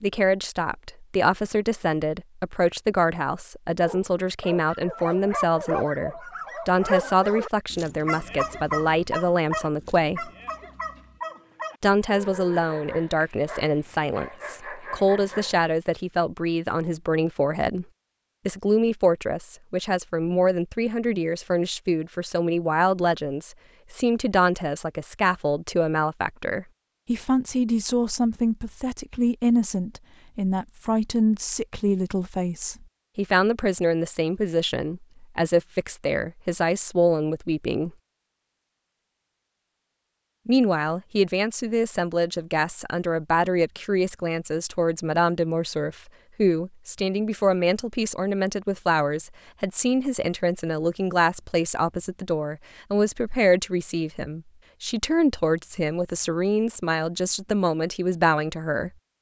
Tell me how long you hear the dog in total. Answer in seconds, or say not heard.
12 s.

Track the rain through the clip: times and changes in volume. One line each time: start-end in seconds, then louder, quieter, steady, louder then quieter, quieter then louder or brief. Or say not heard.
not heard.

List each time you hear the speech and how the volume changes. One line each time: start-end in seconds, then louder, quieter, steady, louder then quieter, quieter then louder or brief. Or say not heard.
0.0-10.3 steady
11.8-17.9 steady
18.4-37.9 steady
40.5-58.9 steady.